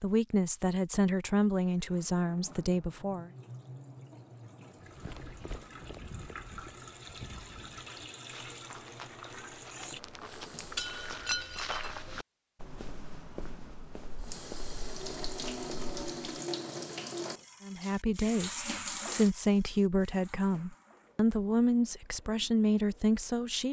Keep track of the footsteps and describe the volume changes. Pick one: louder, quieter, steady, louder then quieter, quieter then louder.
louder then quieter.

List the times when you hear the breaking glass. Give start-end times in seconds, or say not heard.
10.8-11.8.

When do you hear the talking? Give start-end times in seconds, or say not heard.
0.0-3.3, 17.6-23.6.